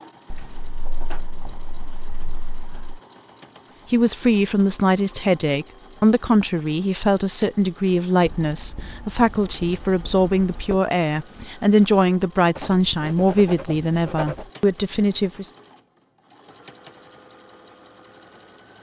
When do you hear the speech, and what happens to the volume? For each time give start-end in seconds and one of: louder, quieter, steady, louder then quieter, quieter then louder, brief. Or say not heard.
3.9-15.5 steady.